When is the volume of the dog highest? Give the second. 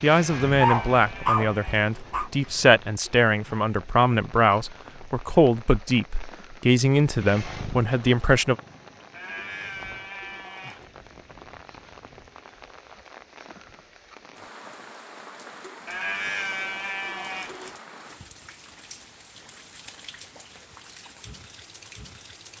1 s.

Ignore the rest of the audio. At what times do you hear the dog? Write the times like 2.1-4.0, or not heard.
0.6-2.3.